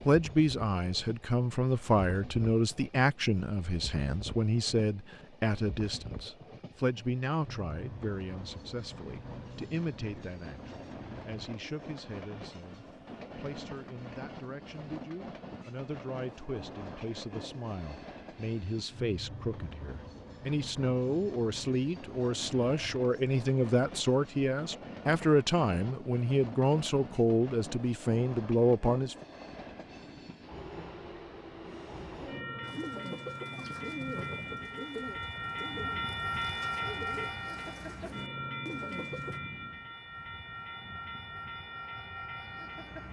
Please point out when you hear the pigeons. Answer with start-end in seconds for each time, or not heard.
32.6-39.4.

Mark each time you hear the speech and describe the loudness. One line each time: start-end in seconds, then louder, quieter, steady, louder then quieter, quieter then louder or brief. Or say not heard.
0.0-29.1 quieter then louder.